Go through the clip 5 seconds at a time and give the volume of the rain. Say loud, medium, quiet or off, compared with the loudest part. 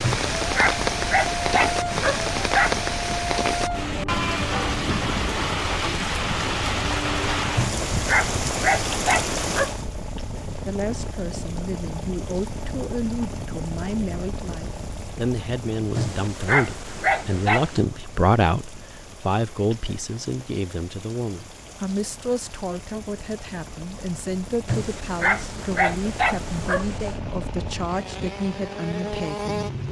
loud, loud, quiet, quiet, quiet, quiet.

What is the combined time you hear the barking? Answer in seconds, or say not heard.
9 s.